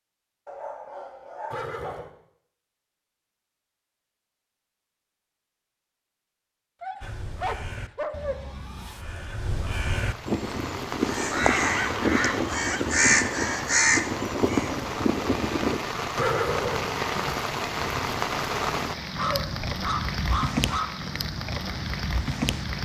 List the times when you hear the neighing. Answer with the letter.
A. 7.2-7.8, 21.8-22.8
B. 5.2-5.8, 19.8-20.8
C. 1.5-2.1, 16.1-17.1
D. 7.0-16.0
C.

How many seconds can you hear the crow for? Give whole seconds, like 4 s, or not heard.
9 s.